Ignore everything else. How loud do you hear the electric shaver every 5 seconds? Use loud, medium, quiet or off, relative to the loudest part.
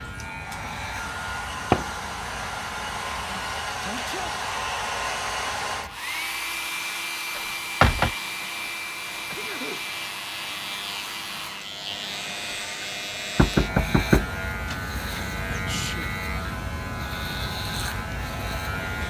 medium, medium, loud, loud.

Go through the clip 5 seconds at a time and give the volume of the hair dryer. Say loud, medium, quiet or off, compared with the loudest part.
loud, loud, medium, medium.